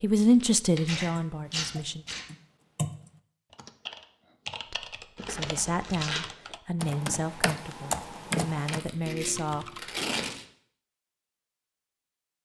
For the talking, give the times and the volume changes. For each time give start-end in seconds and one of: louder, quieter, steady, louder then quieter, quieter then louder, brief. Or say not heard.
0.0-2.0 brief
4.7-10.1 steady.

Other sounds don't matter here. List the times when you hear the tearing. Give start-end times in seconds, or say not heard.
0.1-2.2, 5.2-6.2, 8.7-10.4.